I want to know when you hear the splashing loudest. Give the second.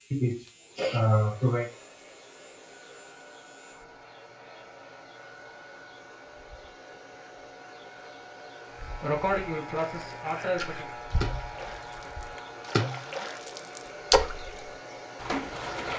14 s.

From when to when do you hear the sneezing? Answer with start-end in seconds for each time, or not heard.
0.1-1.6, 9.0-10.8.